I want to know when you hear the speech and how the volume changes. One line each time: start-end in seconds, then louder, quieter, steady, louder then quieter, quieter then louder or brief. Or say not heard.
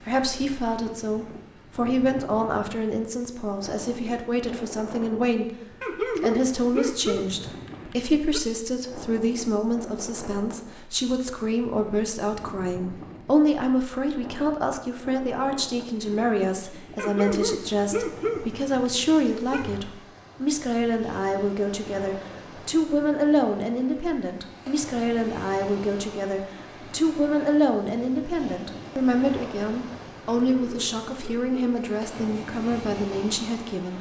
0.0-33.9 steady.